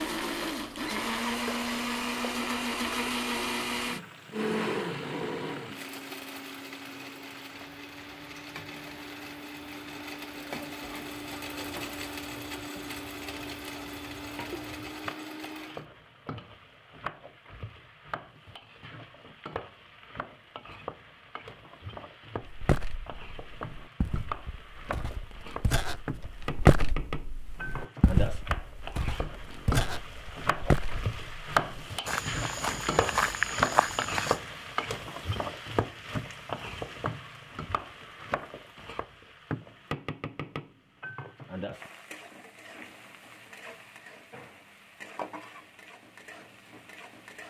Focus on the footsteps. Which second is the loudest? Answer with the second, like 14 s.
27 s.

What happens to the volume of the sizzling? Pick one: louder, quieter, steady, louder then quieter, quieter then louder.
louder then quieter.